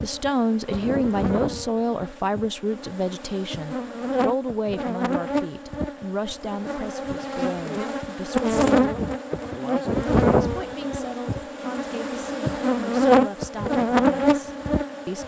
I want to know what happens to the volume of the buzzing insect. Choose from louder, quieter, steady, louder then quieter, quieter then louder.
louder.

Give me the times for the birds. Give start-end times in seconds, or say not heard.
not heard.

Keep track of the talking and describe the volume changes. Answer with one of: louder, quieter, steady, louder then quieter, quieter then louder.
quieter.